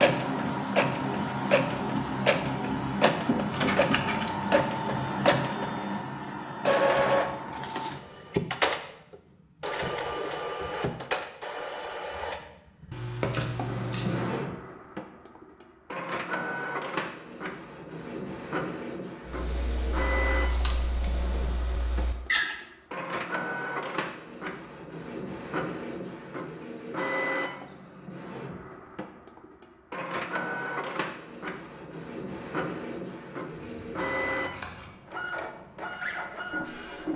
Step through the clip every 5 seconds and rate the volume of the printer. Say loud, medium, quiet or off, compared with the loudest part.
loud, loud, medium, medium, medium, medium, medium, medium.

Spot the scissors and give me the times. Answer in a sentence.
The scissors can be heard from 3.5 to 4.5 s, from 12.9 to 14.3 s and from 33.5 to 35.0 s.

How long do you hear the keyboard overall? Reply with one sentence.
The keyboard can be heard for 3 seconds in total.